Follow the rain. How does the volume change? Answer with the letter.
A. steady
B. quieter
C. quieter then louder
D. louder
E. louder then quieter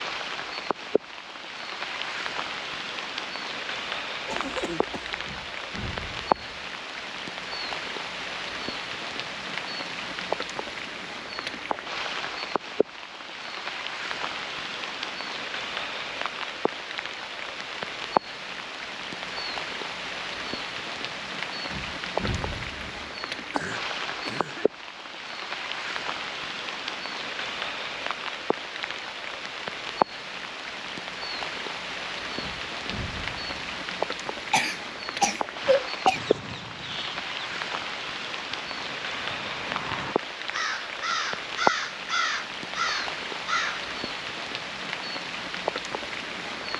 A.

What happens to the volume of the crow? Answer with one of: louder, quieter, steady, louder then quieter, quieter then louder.
quieter then louder.